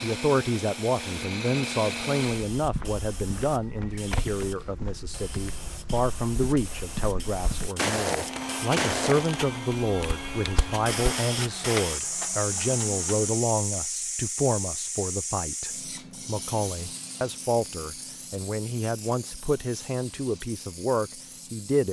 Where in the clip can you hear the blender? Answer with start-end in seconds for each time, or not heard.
0.0-2.5, 8.2-13.5.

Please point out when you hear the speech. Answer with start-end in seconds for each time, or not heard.
0.0-21.8.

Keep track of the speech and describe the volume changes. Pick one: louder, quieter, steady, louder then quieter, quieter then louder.
steady.